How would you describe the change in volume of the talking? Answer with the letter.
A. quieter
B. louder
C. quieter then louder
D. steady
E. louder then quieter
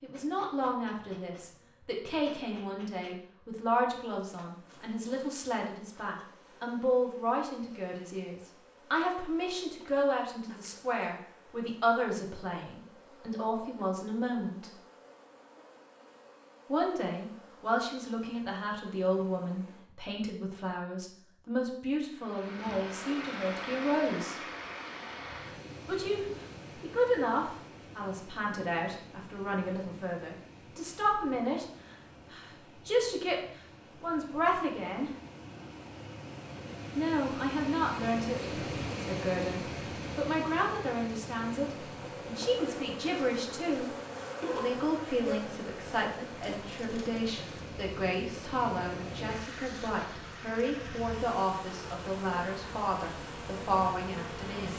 D.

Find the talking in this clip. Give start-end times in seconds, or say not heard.
0.0-14.7, 16.6-24.4, 25.9-35.1, 37.0-43.9, 44.5-54.7.